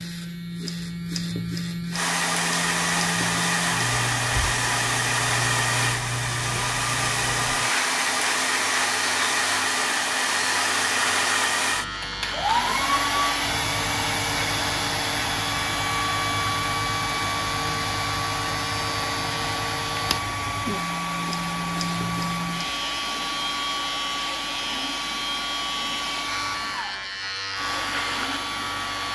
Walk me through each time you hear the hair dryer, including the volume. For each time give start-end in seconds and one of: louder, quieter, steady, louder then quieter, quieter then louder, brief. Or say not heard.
1.9-29.1 quieter.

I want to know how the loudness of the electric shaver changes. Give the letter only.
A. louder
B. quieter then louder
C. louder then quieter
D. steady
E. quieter
D.